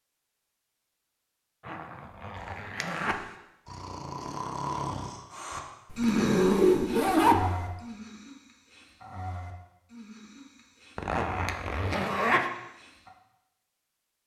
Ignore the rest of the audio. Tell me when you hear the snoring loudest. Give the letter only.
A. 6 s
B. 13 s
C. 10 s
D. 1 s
A.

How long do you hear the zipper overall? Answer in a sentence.
You can hear the zipper for 5 seconds altogether.